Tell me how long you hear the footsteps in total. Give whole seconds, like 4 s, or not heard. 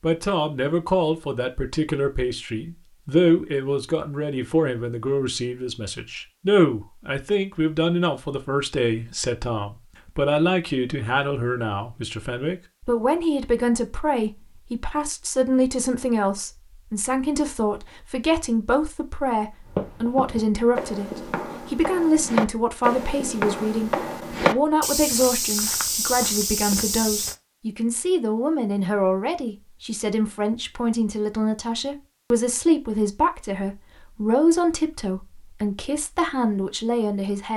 8 s.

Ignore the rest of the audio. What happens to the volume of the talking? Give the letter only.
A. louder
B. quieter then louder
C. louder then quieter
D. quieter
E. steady
E.